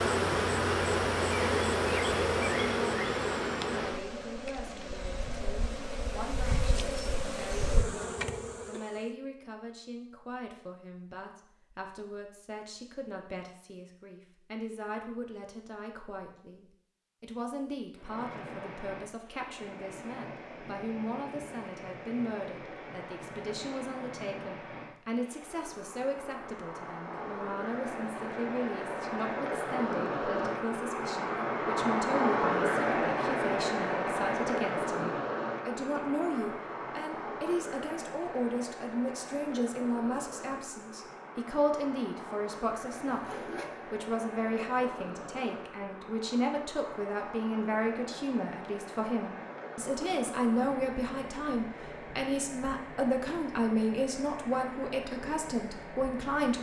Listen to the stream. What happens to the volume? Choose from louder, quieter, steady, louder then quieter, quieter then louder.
louder then quieter.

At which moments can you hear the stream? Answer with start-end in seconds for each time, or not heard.
17.9-56.5.